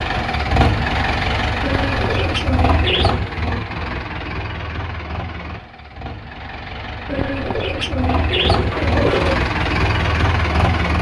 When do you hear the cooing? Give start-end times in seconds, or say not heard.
1.6-3.2, 7.0-9.4.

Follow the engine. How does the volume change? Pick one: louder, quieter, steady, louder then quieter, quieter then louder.
quieter then louder.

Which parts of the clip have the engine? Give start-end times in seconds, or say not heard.
0.0-10.9.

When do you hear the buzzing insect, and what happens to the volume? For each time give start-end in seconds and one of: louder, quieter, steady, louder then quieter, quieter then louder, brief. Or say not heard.
not heard.